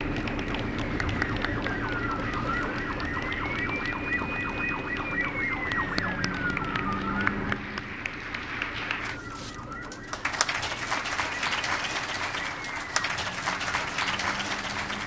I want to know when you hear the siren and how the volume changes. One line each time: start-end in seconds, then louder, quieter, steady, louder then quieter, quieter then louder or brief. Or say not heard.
0.0-15.0 quieter.